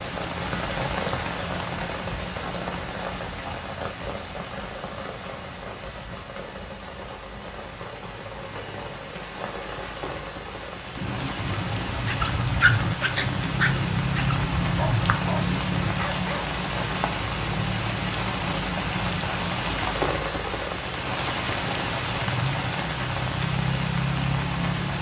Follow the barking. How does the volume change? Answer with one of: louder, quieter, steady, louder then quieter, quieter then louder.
quieter.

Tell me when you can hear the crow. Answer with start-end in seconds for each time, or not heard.
10.9-15.9.